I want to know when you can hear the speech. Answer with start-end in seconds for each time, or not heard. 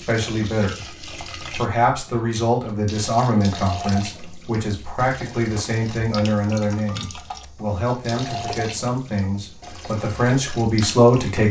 0.0-0.8, 1.5-11.4.